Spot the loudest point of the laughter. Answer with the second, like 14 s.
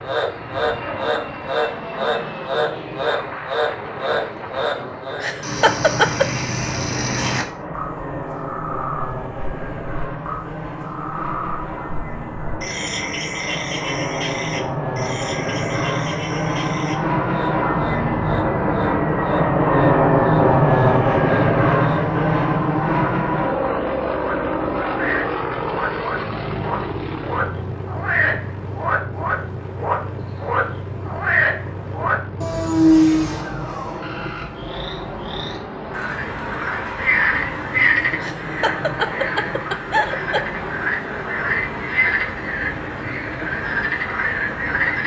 6 s.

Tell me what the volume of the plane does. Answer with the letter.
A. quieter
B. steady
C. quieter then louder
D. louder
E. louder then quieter
E.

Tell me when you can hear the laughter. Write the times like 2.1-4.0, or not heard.
5.2-6.3, 38.2-40.5.